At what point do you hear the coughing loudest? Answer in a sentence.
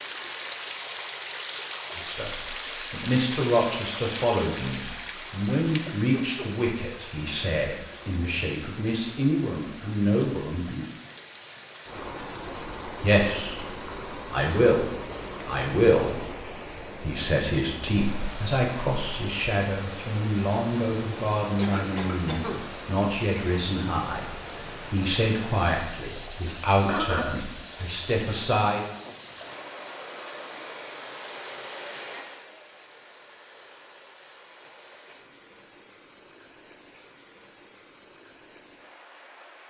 The loudest moment of the coughing is at 27 seconds.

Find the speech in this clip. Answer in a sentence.
The speech can be heard from 1.9 to 10.8 s and from 13.0 to 28.9 s.